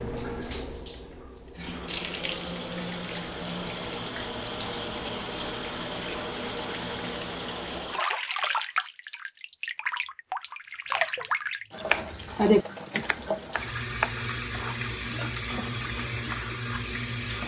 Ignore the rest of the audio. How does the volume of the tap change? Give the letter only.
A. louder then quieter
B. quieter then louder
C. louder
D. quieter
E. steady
E.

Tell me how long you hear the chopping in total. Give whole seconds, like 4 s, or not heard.
2 s.